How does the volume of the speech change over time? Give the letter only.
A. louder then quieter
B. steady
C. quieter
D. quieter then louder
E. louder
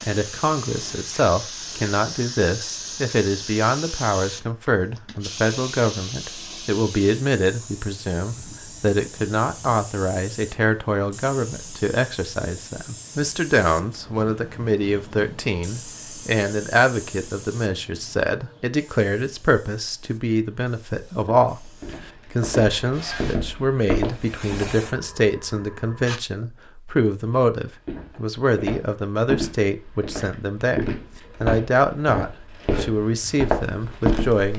B.